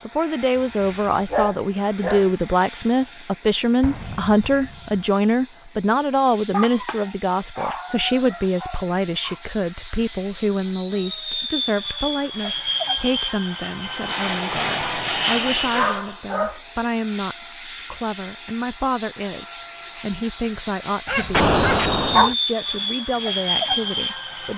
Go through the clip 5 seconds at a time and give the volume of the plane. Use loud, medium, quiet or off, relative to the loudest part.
medium, medium, loud, loud, loud.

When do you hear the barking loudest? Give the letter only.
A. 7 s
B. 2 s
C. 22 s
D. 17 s
C.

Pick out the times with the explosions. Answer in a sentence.
You can hear the explosions from 3.8 to 5.0 s and from 21.3 to 22.2 s.